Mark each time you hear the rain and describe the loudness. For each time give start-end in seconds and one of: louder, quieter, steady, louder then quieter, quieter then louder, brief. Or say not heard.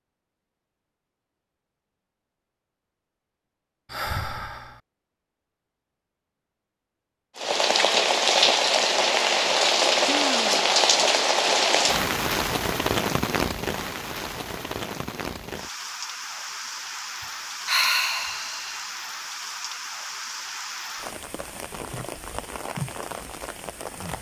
7.3-24.1 quieter.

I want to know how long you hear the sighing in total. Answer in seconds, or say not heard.
3 s.